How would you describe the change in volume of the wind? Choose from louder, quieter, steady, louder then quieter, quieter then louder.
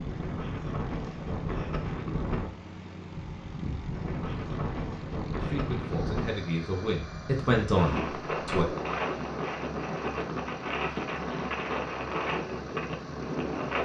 steady.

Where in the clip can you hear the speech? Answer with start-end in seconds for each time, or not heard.
5.3-8.7.